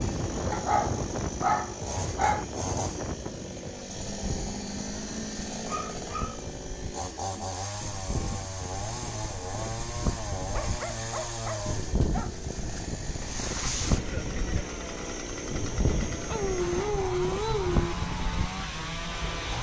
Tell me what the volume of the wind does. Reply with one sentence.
The volume of the wind goes down, then up.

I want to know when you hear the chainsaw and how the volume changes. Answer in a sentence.
You can hear the chainsaw from 0.0 to 19.5 s, at a steady volume.